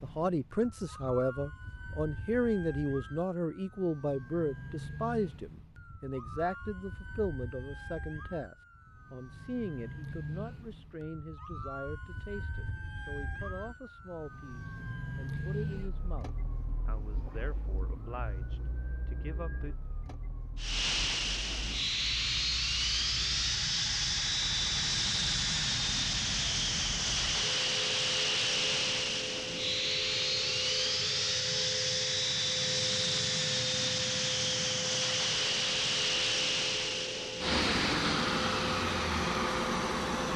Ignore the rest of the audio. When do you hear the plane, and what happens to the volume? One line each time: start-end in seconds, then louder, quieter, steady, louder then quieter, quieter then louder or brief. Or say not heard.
20.6-40.3 steady.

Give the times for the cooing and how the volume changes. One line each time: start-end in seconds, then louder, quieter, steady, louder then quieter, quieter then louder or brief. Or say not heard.
not heard.